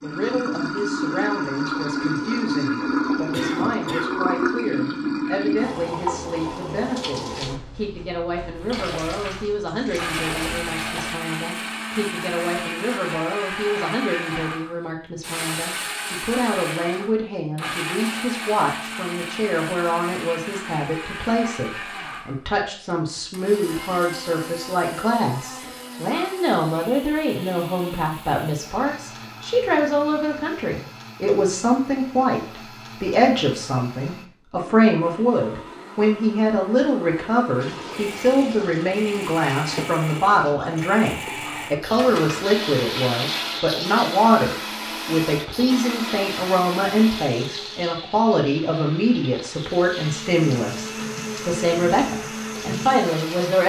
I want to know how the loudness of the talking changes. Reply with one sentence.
The volume of the talking goes up.